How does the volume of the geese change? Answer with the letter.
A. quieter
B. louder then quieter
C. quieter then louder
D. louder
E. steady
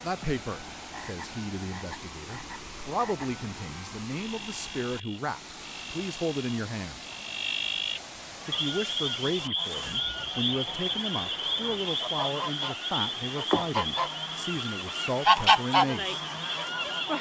D.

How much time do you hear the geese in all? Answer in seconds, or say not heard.
9 s.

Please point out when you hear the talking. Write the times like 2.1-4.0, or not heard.
0.0-7.0, 8.4-16.2.